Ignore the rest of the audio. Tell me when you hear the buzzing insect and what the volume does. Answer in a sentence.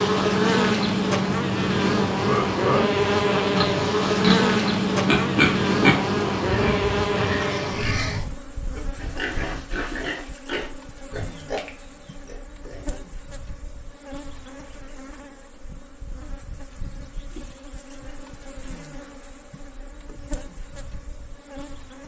You can hear the buzzing insect from 0.0 to 22.0 s, getting quieter.